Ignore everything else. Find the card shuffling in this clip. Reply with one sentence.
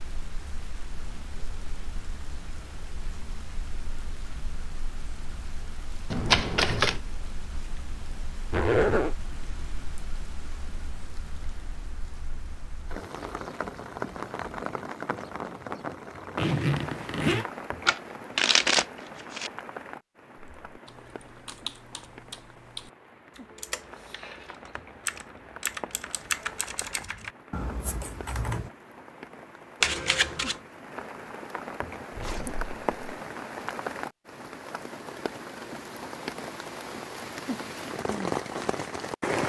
The card shuffling can be heard from 6.1 to 7.0 s, from 17.9 to 19.5 s and from 29.8 to 30.6 s.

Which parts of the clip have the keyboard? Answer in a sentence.
You can hear the keyboard from 20.4 to 28.7 s.